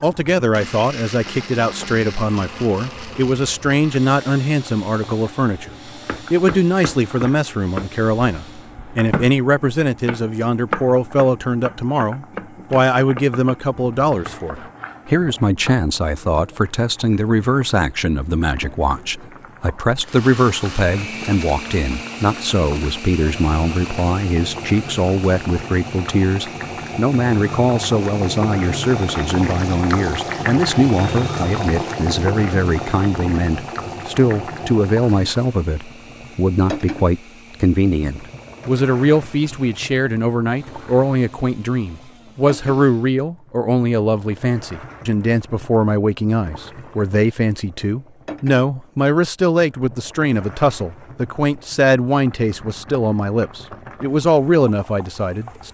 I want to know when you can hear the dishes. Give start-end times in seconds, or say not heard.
not heard.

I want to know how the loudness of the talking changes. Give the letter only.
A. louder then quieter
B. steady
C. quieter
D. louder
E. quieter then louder
B.